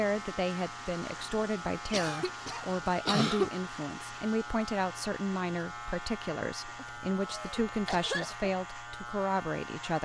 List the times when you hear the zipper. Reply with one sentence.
The zipper can't be heard in this clip.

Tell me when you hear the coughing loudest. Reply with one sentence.
The volume of the coughing peaks at 3 seconds.